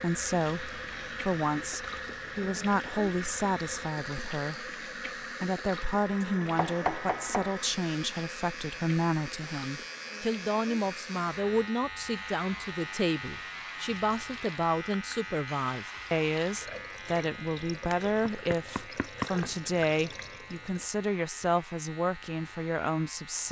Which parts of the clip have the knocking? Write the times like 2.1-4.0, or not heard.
6.2-7.6, 17.8-19.5.